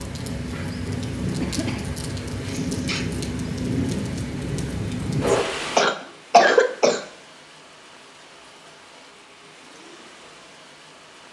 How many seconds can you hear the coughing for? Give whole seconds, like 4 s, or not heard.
3 s.